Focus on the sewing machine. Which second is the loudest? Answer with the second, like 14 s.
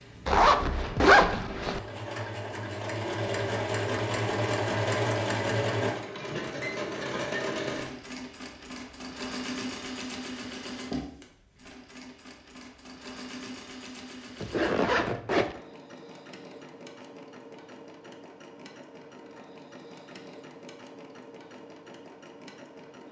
5 s.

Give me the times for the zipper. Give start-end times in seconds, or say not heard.
0.2-1.8, 14.4-15.6.